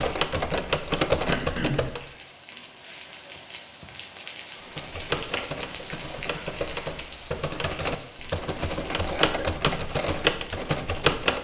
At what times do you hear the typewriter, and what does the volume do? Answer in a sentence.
You can hear the typewriter briefly from 0.0 to 2.0 s; and from 4.7 to 11.3 s, getting louder.